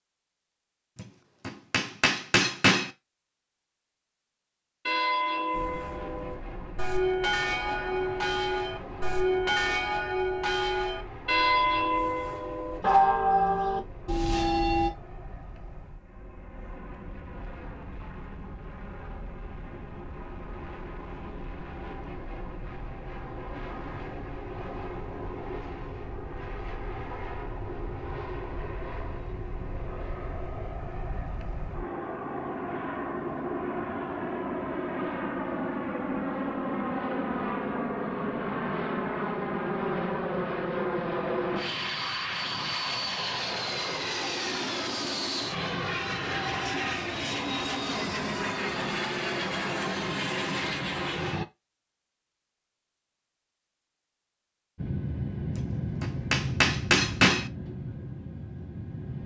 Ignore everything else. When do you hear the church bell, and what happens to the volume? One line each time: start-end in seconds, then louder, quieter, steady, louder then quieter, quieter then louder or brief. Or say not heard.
4.8-14.9 louder.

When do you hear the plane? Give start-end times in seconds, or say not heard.
5.5-51.5, 54.8-59.2.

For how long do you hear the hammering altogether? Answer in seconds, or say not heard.
4 s.